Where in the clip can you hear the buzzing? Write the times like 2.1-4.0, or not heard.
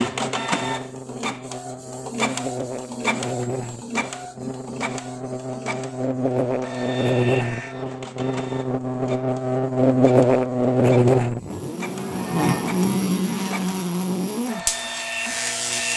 0.0-15.9.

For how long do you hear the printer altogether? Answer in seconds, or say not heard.
16 s.